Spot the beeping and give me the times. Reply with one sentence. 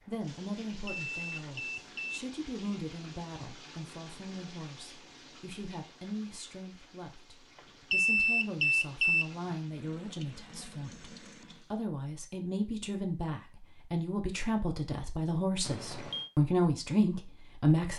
The beeping can be heard from 0.8 to 2.2 s, from 7.9 to 9.2 s and from 15.6 to 16.3 s.